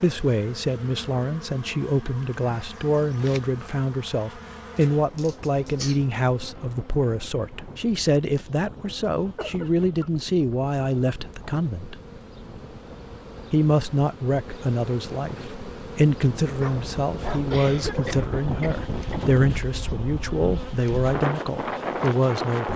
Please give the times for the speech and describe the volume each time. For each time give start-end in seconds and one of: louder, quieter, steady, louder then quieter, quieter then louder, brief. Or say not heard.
0.0-11.9 steady
13.5-22.7 steady.